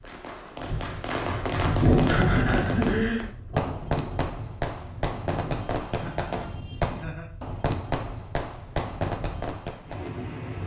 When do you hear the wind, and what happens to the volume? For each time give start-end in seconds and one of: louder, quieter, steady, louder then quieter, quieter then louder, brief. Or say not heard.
0.0-10.6 quieter.